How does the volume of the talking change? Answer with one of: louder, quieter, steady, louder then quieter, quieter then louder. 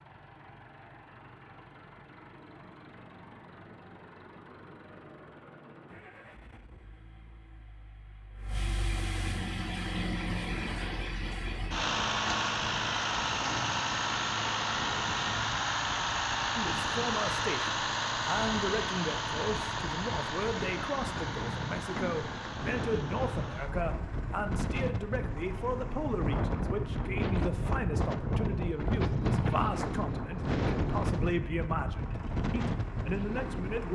steady.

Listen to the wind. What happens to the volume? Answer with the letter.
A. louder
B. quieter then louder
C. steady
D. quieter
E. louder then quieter
A.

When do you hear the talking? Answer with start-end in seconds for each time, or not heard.
16.6-33.9.